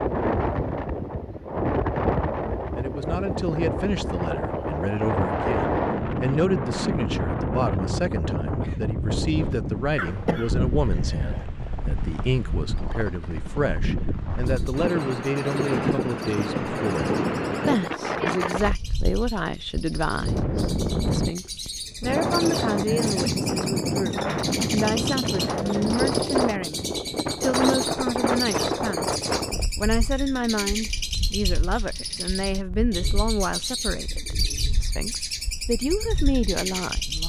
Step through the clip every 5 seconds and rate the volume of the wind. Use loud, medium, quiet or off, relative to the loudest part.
loud, loud, medium, loud, loud, loud, quiet, quiet.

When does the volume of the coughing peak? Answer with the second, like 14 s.
10 s.